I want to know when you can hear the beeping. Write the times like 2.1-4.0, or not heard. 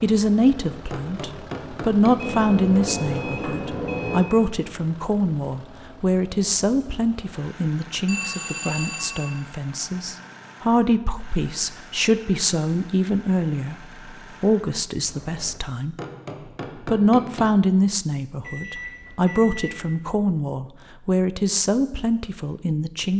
2.2-4.2, 8.1-9.3, 18.4-19.8.